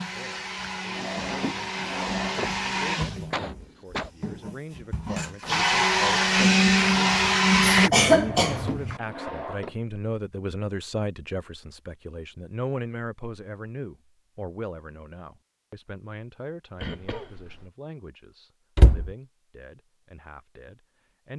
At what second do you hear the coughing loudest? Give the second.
8 s.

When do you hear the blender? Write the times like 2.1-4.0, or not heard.
0.0-7.9.